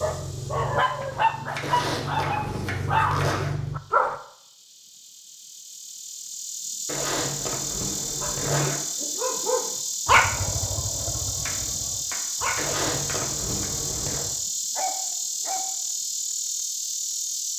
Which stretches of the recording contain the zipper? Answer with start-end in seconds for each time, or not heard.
1.6-3.5, 6.8-8.8, 12.6-14.2.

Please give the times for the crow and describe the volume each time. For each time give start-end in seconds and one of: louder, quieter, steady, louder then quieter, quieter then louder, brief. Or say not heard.
not heard.